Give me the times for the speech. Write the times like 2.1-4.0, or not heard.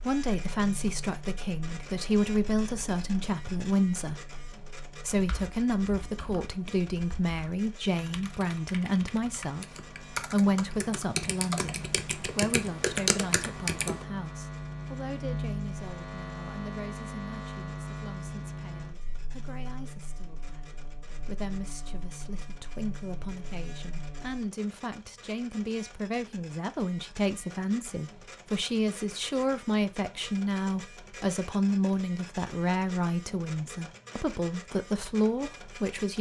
0.0-36.1.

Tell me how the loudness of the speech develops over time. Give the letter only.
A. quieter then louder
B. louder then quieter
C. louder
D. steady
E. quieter
A.